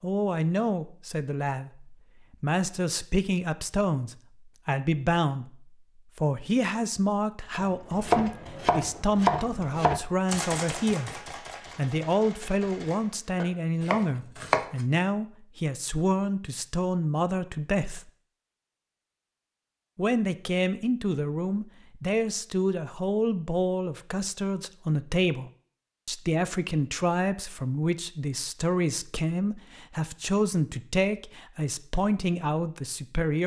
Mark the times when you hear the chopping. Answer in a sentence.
The chopping can be heard from 7.5 to 14.8 s.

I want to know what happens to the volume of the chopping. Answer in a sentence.
The loudness of the chopping goes down, then up.